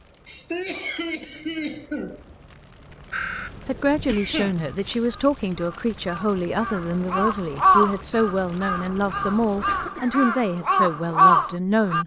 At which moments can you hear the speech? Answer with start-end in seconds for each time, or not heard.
3.6-12.0.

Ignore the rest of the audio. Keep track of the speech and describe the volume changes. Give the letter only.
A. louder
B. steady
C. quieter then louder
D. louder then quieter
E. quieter
B.